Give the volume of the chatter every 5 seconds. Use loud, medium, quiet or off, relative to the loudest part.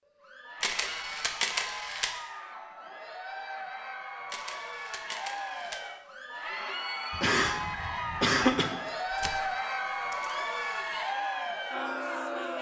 medium, loud, loud.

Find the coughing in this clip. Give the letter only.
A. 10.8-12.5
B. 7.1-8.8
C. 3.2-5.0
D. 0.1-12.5
B.